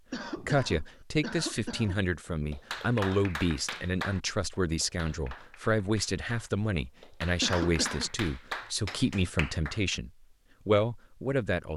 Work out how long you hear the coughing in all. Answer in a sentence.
The coughing can be heard for 3 seconds in total.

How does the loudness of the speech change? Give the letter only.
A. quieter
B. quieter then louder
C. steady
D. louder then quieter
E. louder
C.